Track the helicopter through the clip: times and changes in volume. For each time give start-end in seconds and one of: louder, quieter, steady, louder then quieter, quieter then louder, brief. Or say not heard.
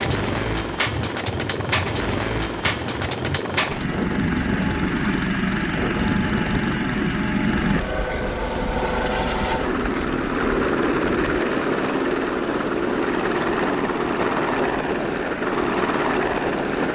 0.0-16.9 steady.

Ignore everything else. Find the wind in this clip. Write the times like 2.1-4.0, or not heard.
0.0-16.9.